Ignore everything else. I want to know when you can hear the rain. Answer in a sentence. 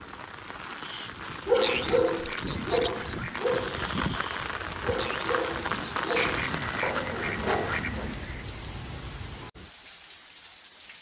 The rain can be heard from 0.0 to 10.9 s.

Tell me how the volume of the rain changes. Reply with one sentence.
The loudness of the rain goes up, then down.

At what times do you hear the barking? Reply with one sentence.
The barking can be heard from 0.8 to 8.1 s.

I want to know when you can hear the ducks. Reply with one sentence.
The ducks can be heard from 1.6 to 3.6 s and from 6.2 to 8.2 s.